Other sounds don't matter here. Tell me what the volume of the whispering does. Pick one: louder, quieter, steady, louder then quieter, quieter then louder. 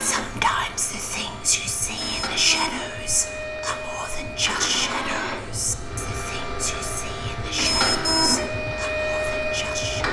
quieter.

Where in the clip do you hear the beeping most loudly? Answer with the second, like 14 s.
8 s.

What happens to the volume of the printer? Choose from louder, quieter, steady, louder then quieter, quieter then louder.
louder.